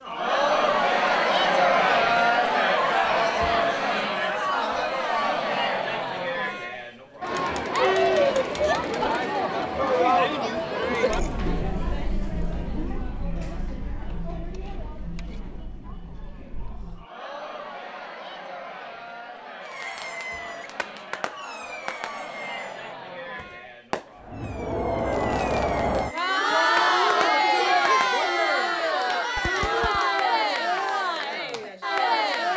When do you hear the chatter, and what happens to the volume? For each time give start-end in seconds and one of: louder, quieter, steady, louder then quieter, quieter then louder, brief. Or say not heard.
0.0-32.5 quieter then louder.